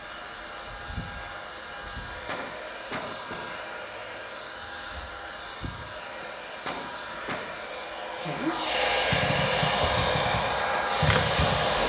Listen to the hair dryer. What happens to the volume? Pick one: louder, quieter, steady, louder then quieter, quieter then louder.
louder.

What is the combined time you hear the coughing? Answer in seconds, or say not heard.
3 s.